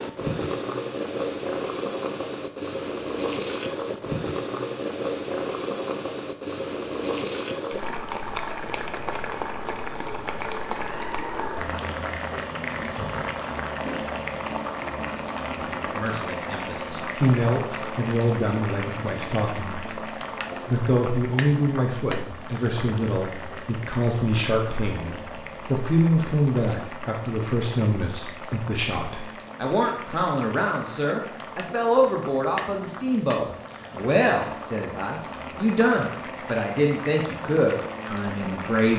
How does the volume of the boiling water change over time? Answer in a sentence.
The loudness of the boiling water goes down.